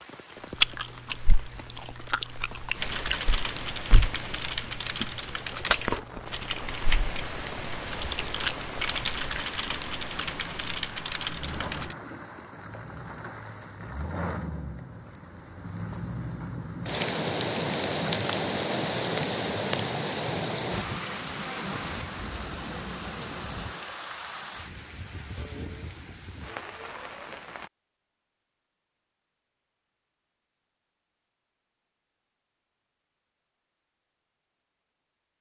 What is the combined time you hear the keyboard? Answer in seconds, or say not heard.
9 s.